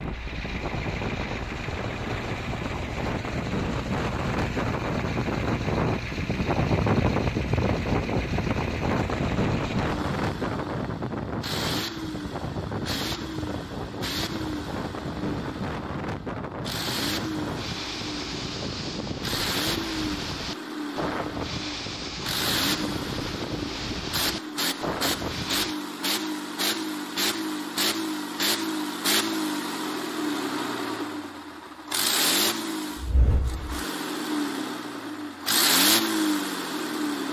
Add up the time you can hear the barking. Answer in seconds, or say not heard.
not heard.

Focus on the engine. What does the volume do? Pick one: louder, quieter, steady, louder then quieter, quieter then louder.
louder.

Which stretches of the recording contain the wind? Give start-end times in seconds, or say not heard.
0.0-25.8.